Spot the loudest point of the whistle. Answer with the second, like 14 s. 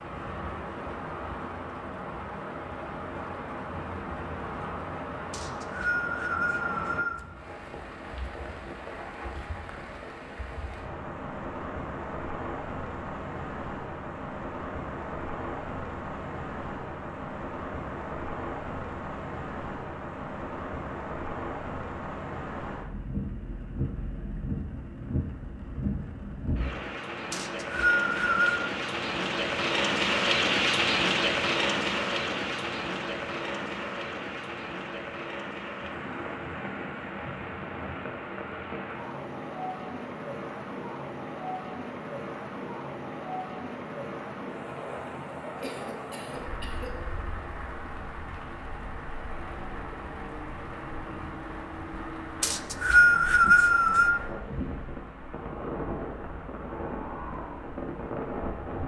53 s.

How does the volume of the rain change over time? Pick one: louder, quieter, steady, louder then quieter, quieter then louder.
louder then quieter.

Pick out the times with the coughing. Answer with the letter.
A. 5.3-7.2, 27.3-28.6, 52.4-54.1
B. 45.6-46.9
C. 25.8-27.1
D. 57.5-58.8
B.